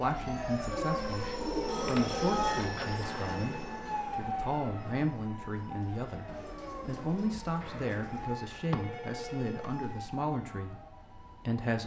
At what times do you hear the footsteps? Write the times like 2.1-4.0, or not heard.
not heard.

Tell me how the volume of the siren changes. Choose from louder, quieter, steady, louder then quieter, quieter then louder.
quieter.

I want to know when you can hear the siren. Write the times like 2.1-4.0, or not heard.
0.0-11.6.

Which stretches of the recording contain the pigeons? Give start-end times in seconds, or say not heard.
0.7-2.6, 6.2-8.3.